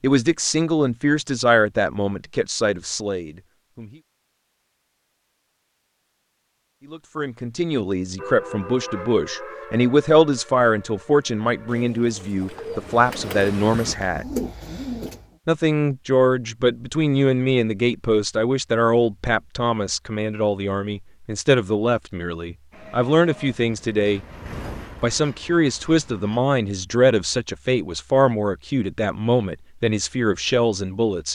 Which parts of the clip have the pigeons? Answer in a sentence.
You can hear the pigeons from 11.7 to 15.3 s.